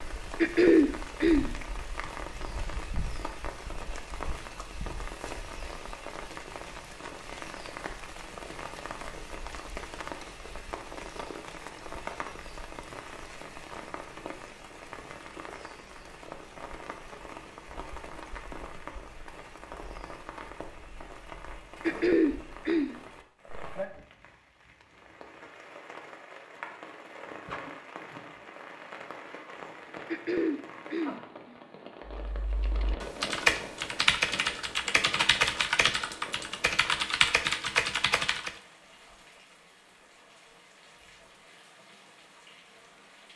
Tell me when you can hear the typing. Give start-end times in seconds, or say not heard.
32.0-38.5.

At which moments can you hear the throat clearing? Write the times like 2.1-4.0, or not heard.
0.4-1.5, 21.8-22.9, 30.1-31.6.